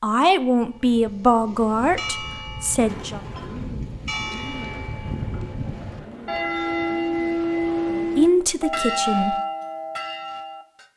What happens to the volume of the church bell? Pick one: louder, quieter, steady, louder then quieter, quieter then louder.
louder.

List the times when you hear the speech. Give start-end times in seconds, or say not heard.
0.0-3.2, 7.9-9.3.